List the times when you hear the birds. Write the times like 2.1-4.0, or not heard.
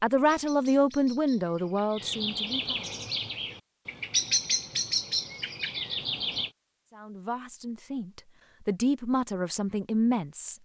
0.2-6.5.